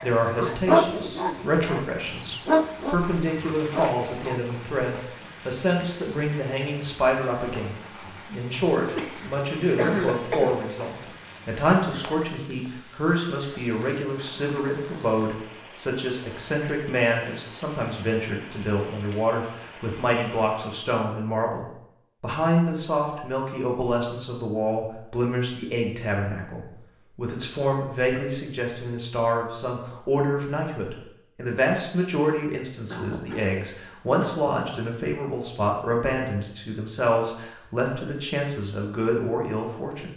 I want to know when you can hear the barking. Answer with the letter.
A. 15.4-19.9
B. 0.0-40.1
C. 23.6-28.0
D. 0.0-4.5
D.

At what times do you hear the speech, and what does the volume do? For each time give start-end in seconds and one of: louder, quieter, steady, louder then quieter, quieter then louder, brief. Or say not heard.
0.0-40.1 steady.